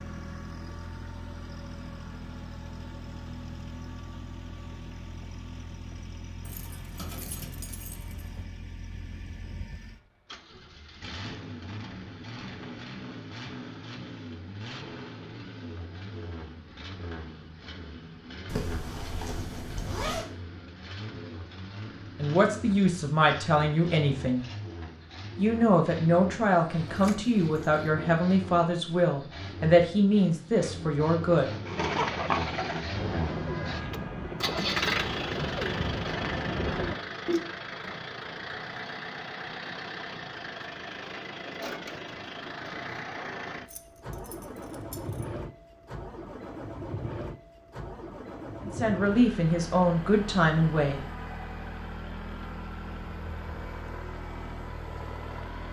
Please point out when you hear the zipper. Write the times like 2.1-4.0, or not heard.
18.4-20.2.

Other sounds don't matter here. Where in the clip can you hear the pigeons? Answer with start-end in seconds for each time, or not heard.
31.6-37.5.